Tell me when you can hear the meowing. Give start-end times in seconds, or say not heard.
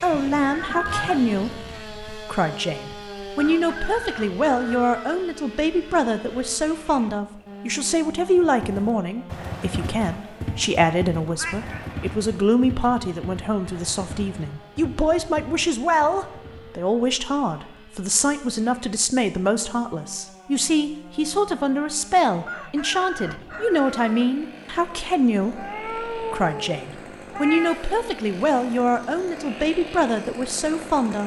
0.1-1.6, 11.2-11.9, 25.6-27.8.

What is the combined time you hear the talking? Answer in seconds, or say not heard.
31 s.